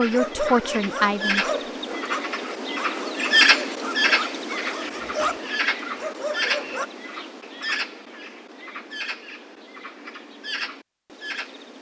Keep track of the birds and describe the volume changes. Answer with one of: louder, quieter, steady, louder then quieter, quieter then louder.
louder then quieter.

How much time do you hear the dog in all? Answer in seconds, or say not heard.
7 s.